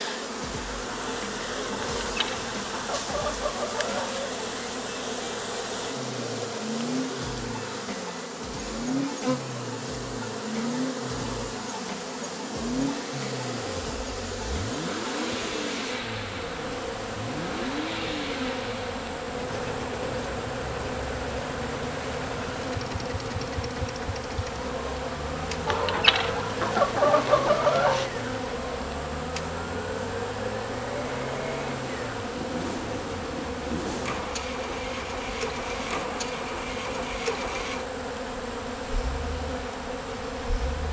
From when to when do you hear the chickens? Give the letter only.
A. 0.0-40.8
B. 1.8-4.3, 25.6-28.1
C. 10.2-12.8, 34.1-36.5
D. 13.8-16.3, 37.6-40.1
B.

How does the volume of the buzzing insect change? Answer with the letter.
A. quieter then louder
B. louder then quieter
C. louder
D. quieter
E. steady
E.